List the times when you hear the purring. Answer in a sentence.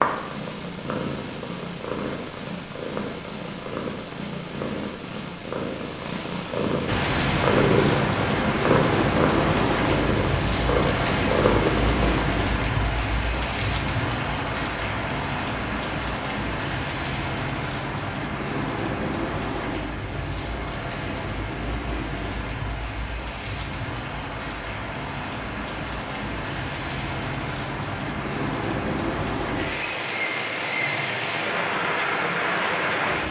The purring can be heard from 0.0 to 12.2 s.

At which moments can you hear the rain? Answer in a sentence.
The rain can be heard from 6.8 to 33.2 s.